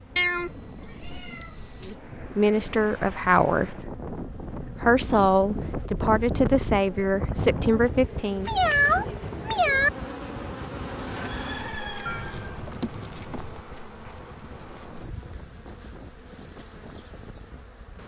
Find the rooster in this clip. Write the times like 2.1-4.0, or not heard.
11.2-12.6.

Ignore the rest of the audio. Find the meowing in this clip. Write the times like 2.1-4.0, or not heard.
0.1-1.9, 8.4-9.9, 12.1-13.6.